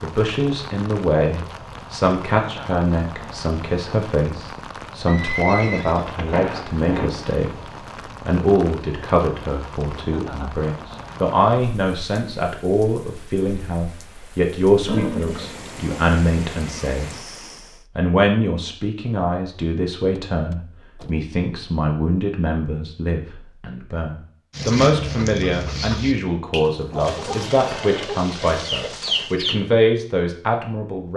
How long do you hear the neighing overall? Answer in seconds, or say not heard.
6 s.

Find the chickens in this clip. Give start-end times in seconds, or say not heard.
24.5-29.6.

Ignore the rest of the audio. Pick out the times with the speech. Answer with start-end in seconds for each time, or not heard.
0.0-17.1, 17.9-31.1.